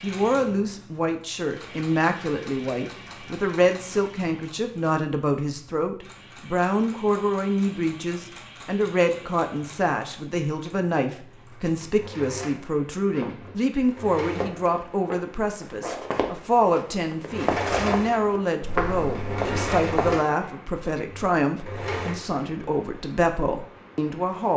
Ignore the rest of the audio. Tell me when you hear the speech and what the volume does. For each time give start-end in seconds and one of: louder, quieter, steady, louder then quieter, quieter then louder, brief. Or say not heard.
0.0-24.5 steady.